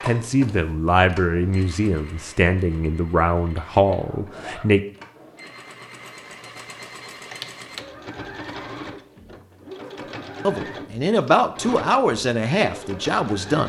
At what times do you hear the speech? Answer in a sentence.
You can hear the speech from 0.0 to 4.8 s and from 10.4 to 13.6 s.